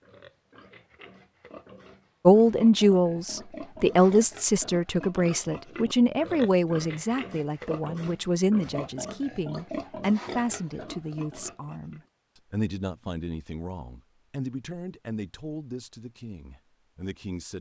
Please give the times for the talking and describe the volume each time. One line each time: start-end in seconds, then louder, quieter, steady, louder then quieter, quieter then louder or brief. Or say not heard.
2.2-17.5 quieter.